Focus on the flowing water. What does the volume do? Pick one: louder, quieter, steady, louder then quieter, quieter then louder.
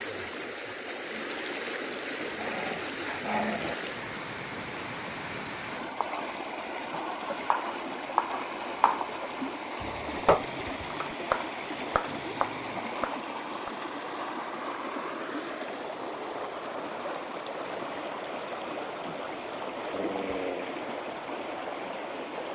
steady.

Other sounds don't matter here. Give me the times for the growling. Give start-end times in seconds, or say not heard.
2.1-3.8, 11.9-12.9, 19.9-20.8.